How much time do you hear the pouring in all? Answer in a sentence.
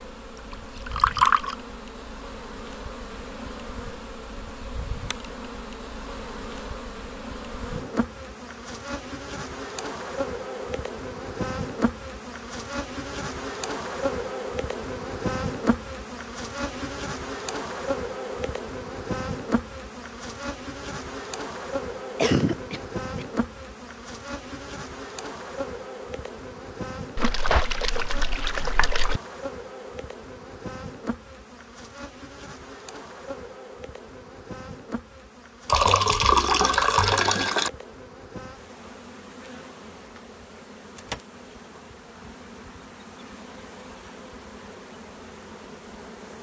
You can hear the pouring for 5 seconds altogether.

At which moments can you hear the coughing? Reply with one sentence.
The coughing can be heard from 22.1 to 23.2 s.